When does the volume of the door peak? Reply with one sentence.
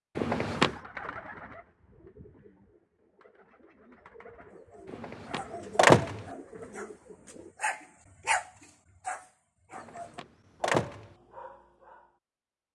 The volume of the door peaks at 6 seconds.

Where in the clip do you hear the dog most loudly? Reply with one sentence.
The volume of the dog peaks at 8 seconds.